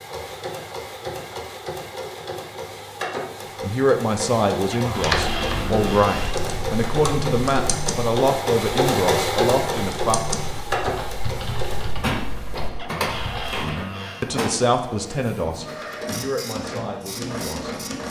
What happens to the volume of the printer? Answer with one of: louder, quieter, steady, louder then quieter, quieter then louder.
louder then quieter.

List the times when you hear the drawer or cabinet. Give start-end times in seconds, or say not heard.
4.7-6.4, 12.8-14.3.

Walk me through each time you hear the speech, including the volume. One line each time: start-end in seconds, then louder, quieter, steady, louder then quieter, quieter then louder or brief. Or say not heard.
3.6-10.2 steady
13.6-17.8 quieter.